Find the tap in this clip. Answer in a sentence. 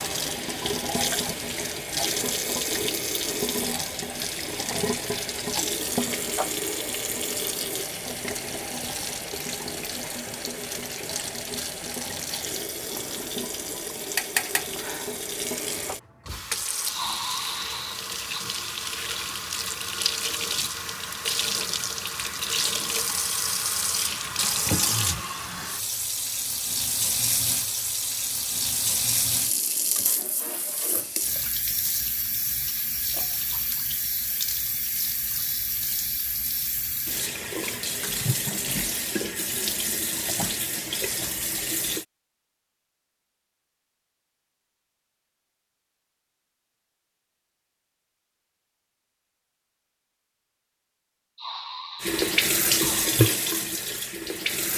The tap can be heard from 0.0 to 42.0 s and from 52.0 to 54.7 s.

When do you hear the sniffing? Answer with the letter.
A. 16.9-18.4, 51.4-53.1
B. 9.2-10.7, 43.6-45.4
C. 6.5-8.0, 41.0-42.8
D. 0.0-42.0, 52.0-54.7
A.